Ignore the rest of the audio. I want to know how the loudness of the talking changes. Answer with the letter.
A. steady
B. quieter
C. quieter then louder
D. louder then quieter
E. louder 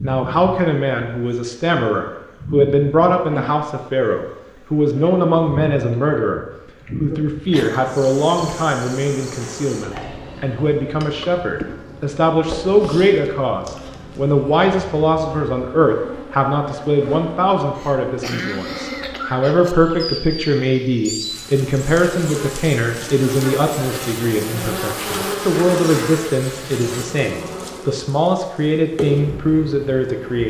A.